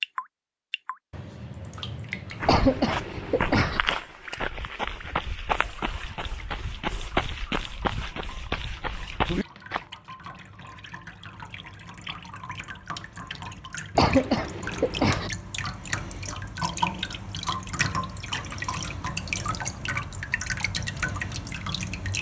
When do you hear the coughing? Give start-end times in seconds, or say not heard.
2.5-3.8, 13.9-15.3.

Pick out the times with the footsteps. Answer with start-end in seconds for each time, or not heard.
2.3-9.8.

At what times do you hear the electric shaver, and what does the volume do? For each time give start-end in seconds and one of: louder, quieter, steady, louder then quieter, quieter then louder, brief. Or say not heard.
not heard.